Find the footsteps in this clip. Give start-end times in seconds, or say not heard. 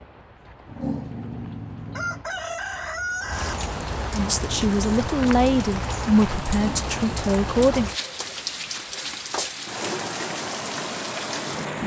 not heard.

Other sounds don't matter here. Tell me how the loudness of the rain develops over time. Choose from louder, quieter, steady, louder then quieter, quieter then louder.
louder.